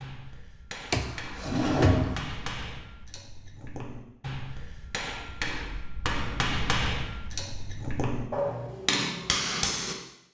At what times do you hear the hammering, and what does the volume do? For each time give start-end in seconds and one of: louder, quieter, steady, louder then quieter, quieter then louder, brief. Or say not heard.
0.0-10.3 louder.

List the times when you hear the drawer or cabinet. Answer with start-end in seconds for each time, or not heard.
0.9-2.4.